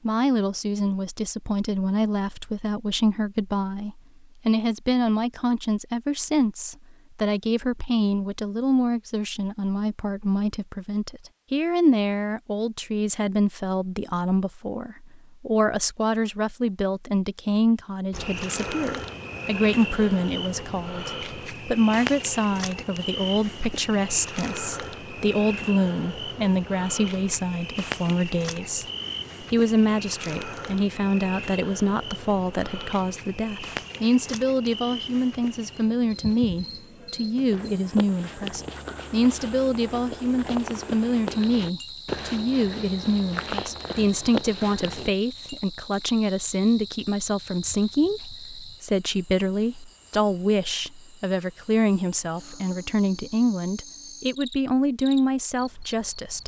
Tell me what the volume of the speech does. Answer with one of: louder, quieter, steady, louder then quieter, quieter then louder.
steady.